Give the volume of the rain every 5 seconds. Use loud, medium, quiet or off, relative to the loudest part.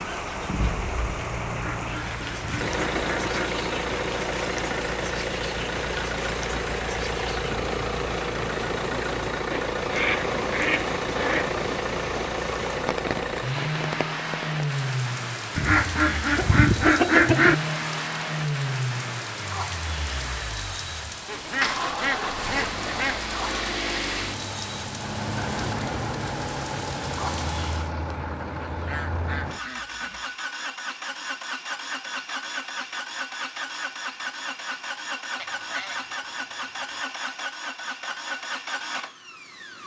loud, loud, loud, loud, loud, loud, off, off.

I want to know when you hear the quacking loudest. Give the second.
17 s.